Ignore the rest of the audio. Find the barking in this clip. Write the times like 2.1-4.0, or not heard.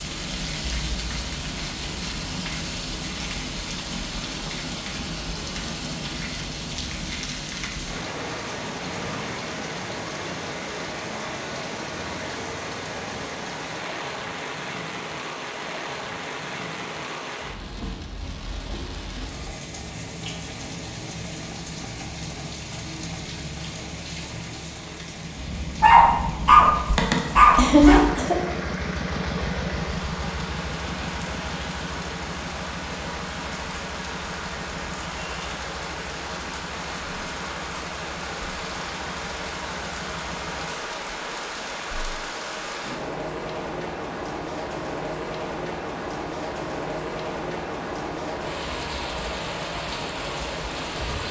25.8-28.0.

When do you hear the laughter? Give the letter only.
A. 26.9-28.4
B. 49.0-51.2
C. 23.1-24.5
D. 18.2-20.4
A.